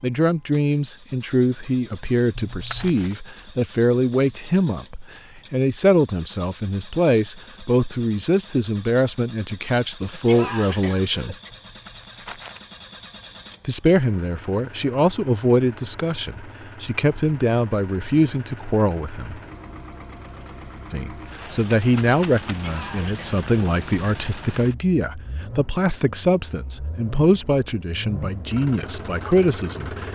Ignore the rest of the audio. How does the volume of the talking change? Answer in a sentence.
The loudness of the talking stays about the same.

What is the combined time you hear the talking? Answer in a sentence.
The talking can be heard for 26 seconds in total.